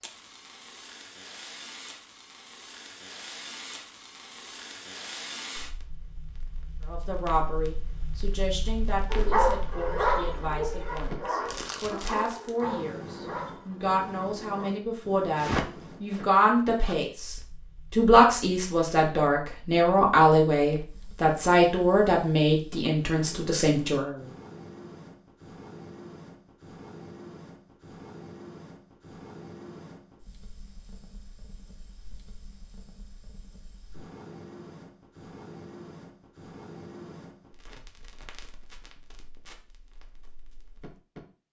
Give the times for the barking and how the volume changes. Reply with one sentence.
The barking can be heard from 9.1 to 14.7 s, getting quieter.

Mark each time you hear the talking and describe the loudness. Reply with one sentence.
You can hear the talking from 6.8 to 24.2 s, getting louder.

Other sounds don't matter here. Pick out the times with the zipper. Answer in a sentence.
The zipper can be heard from 15.3 to 16.9 s.